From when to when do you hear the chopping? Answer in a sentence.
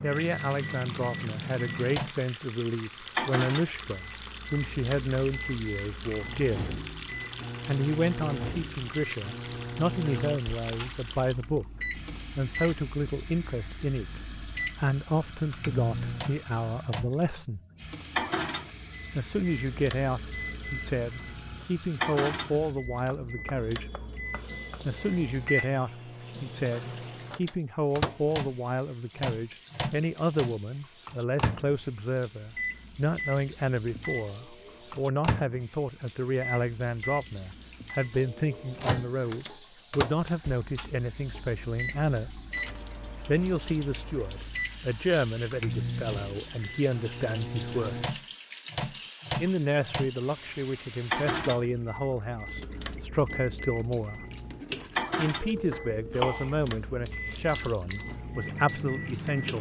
You can hear the chopping from 23.1 to 24.9 s and from 55.4 to 56.6 s.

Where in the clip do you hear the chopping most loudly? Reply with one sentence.
The loudest moment of the chopping is at 56 seconds.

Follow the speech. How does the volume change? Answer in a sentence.
The volume of the speech stays about the same.